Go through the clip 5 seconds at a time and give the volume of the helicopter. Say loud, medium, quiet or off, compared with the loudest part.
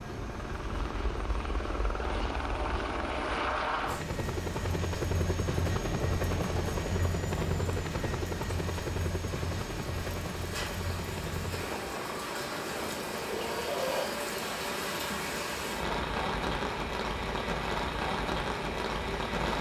loud, loud, medium, medium.